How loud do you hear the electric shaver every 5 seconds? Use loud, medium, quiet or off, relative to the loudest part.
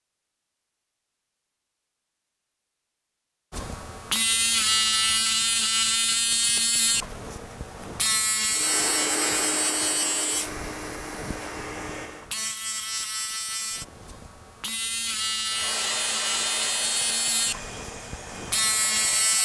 loud, loud, medium, loud.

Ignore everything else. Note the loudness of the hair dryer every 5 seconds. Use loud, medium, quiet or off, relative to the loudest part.
off, loud, medium, medium.